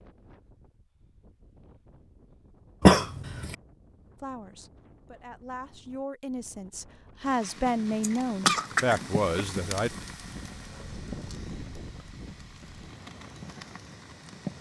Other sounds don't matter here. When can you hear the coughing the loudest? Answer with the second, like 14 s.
3 s.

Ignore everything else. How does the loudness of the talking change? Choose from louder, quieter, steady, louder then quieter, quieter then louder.
louder.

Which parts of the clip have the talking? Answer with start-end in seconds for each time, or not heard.
4.2-9.9.